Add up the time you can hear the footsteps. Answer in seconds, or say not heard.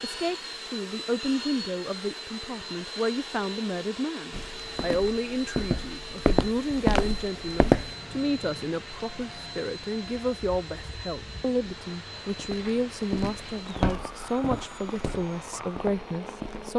8 s.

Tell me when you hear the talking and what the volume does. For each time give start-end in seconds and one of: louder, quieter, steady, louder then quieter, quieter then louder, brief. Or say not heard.
0.0-16.7 steady.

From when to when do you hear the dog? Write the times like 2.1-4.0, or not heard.
not heard.